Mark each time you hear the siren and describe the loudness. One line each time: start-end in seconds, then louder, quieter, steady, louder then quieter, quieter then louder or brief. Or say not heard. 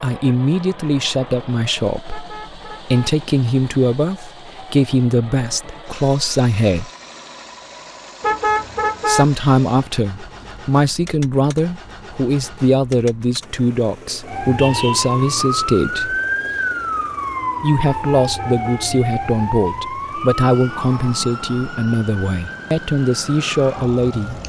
14.2-24.4 quieter.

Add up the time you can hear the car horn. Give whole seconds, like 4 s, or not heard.
3 s.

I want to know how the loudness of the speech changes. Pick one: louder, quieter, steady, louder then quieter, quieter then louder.
steady.